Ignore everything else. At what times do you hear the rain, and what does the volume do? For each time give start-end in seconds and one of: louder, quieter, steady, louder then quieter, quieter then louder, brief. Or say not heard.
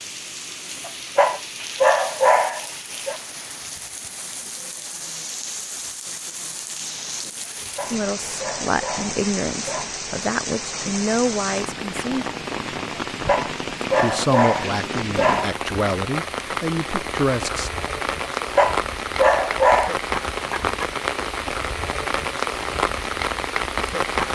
0.0-24.2 louder.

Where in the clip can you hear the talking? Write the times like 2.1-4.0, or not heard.
7.9-12.2, 14.0-17.7.